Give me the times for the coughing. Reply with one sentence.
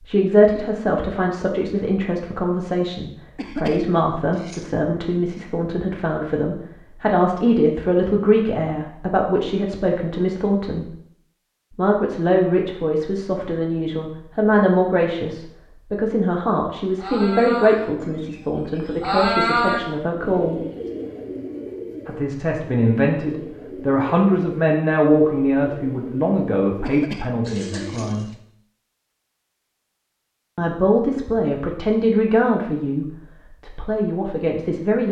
The coughing can be heard from 3.4 to 4.7 s and from 26.8 to 28.2 s.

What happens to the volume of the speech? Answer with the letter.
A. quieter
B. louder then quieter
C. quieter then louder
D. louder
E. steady
E.